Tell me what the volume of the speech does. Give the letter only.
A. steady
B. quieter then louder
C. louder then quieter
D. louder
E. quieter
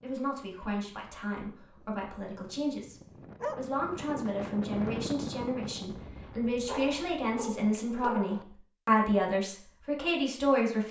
D.